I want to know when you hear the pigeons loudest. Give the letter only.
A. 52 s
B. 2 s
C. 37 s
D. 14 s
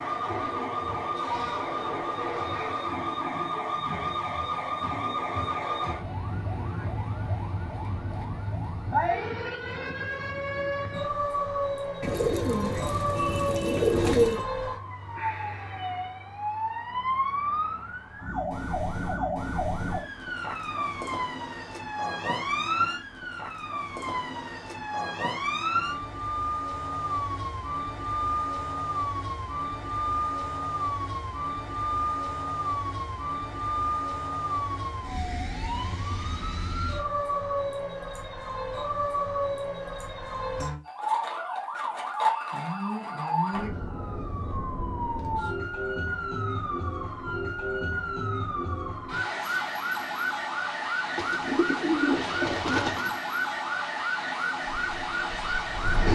D.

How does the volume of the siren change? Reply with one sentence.
The volume of the siren stays about the same.